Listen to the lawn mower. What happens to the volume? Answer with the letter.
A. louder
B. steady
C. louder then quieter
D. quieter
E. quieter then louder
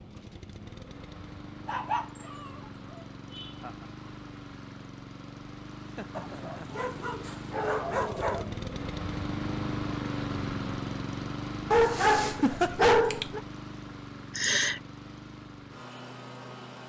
C.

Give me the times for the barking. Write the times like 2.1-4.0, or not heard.
1.6-2.5, 6.2-8.4, 11.7-13.4.